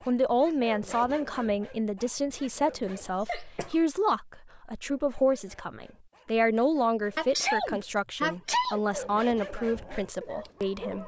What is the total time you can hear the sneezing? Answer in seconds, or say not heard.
3 s.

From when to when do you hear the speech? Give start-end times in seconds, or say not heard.
0.1-11.0.